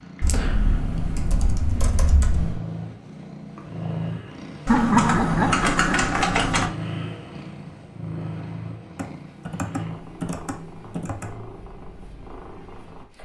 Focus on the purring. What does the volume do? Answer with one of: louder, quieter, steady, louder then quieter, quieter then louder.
quieter.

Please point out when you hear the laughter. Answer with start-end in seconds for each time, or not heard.
4.7-6.1.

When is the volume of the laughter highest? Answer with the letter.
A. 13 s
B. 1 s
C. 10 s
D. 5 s
D.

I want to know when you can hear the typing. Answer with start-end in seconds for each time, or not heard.
0.2-2.6, 4.7-6.7, 8.9-11.3.